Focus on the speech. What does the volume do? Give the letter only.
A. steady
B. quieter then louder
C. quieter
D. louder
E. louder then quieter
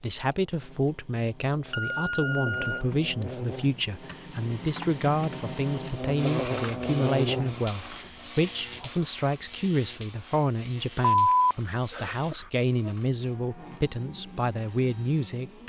A.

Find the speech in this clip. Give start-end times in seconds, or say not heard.
0.0-15.6.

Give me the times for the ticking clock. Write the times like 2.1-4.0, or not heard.
not heard.